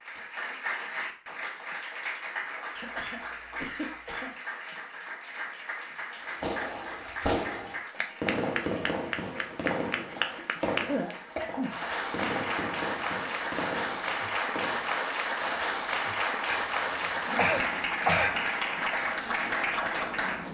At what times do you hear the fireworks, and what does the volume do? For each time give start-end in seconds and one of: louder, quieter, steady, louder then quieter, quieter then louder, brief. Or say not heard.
6.3-15.6 quieter.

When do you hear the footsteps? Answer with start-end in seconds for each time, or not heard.
not heard.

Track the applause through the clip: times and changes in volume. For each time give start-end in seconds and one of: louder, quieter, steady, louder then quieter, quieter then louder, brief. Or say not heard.
0.0-20.4 louder.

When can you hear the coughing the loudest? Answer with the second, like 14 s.
18 s.